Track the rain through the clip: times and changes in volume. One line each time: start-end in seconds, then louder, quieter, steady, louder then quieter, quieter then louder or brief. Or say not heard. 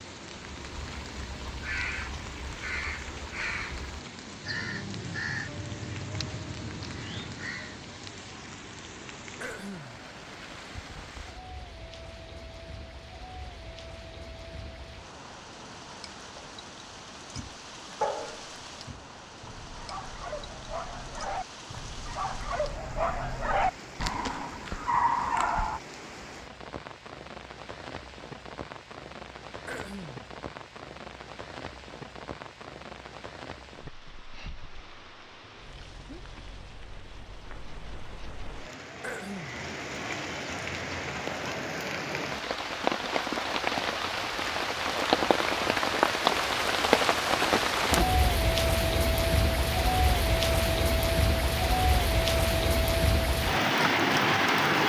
0.0-54.8 louder.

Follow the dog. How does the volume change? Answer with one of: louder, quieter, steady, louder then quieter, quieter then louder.
quieter then louder.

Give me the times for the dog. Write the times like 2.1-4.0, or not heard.
17.4-25.8.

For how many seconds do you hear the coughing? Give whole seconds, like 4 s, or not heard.
2 s.